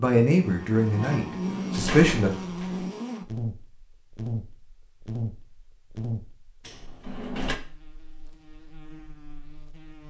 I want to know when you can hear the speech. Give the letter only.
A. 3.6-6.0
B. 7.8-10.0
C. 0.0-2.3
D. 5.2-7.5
C.